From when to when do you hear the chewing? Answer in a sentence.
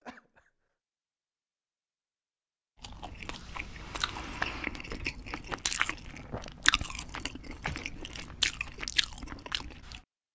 You can hear the chewing from 2.8 to 10.0 s.